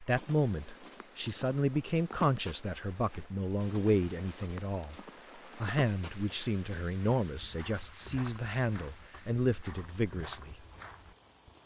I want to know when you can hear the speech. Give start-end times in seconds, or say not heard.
0.0-5.0, 5.5-10.6.